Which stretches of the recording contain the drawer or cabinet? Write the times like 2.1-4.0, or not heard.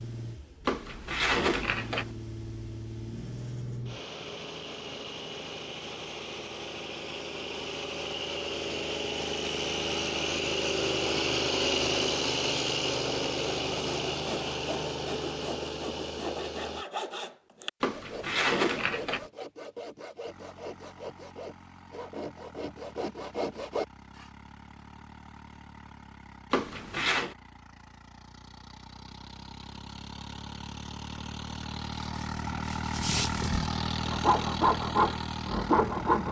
0.7-2.1, 17.8-19.2, 26.5-27.4.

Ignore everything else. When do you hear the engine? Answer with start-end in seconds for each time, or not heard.
0.0-16.9, 20.2-36.2.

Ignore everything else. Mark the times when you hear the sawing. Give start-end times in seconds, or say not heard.
13.8-24.2, 32.0-36.2.